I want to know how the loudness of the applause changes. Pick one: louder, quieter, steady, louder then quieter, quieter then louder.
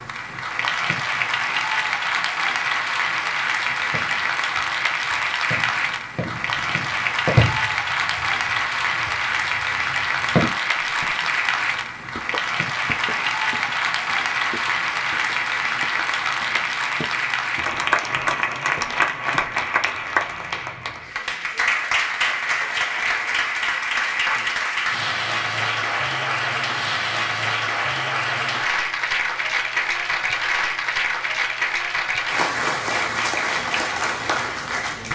steady.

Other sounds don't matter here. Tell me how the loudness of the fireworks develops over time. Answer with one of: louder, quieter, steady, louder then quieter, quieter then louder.
louder then quieter.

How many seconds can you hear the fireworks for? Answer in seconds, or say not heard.
7 s.